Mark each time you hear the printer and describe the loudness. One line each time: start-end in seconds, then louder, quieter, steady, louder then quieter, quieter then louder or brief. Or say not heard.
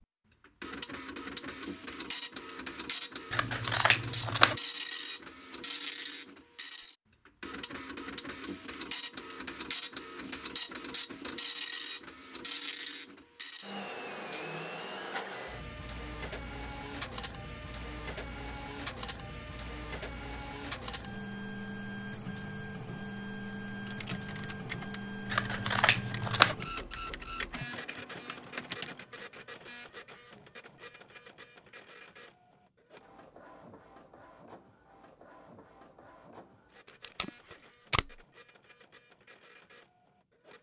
0.0-40.5 quieter.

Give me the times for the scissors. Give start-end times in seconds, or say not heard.
3.3-4.6, 25.3-26.6.